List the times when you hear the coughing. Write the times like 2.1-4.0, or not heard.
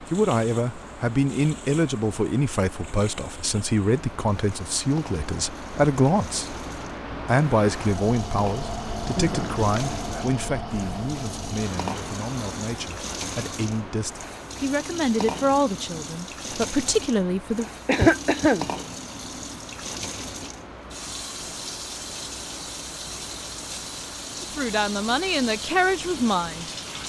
9.2-10.2, 17.9-18.7.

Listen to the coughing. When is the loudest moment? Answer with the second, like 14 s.
18 s.